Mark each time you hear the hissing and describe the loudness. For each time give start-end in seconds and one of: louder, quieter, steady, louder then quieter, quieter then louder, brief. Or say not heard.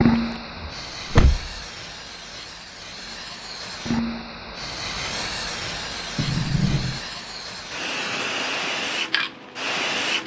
0.0-10.2 louder.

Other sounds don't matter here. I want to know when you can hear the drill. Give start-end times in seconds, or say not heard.
not heard.